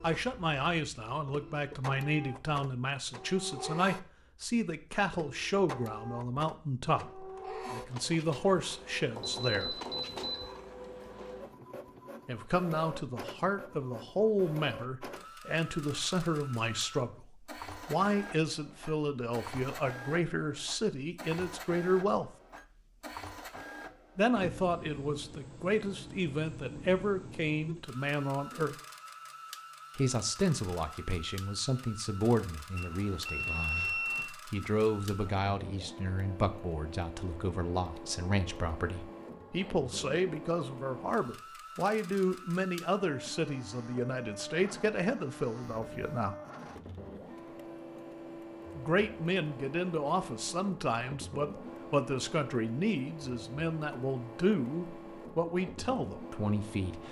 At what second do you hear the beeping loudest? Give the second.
34 s.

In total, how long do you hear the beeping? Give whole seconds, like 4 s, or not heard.
3 s.